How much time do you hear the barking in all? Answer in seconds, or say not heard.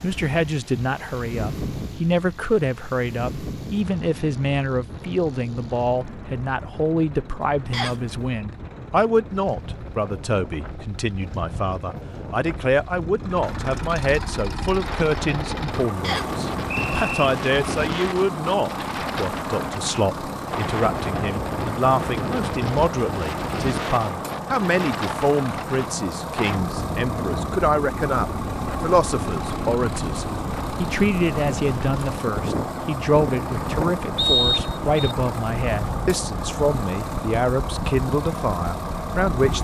not heard.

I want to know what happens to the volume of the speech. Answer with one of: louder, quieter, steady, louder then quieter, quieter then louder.
steady.